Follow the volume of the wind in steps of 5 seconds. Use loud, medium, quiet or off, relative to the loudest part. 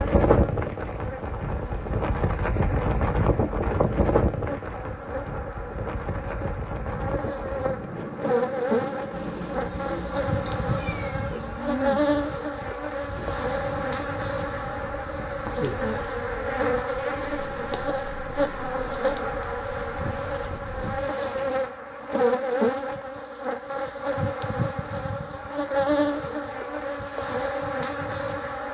loud, medium, quiet, quiet, quiet, off.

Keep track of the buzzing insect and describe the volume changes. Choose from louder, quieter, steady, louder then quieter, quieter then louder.
louder.